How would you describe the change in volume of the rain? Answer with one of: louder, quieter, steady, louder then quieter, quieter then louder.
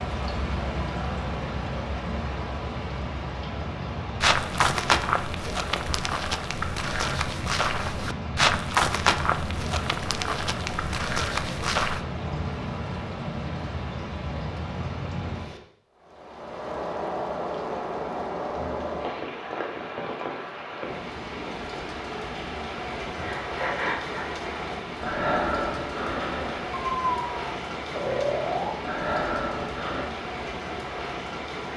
steady.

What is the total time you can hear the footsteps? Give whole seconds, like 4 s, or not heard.
8 s.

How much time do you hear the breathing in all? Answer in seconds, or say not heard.
7 s.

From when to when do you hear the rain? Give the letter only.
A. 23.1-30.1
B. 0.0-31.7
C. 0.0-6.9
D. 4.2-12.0
B.